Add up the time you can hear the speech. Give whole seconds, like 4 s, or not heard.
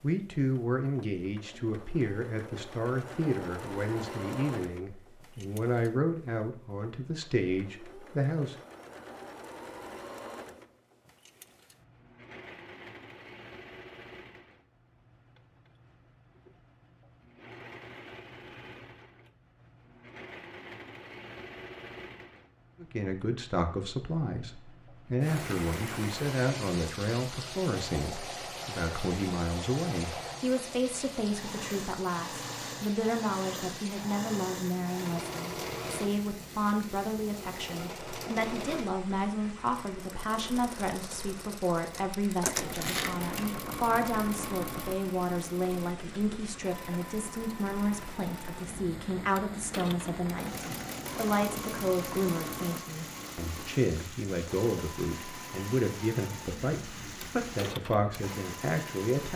45 s.